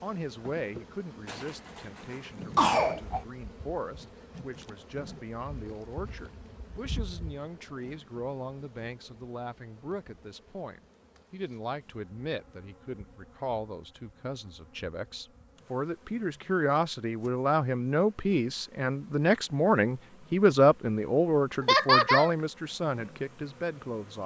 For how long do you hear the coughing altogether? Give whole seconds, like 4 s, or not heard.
3 s.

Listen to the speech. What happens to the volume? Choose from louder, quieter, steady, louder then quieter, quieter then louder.
louder.